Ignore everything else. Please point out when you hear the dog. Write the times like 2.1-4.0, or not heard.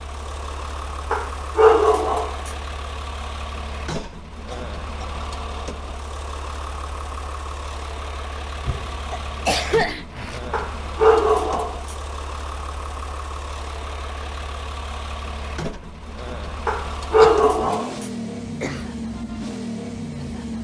1.1-2.5, 10.5-11.9, 16.6-18.1.